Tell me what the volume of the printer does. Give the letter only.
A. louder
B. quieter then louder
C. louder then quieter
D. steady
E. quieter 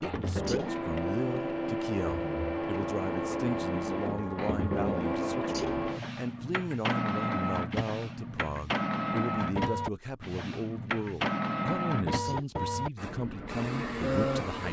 D.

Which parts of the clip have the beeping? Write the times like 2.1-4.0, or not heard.
not heard.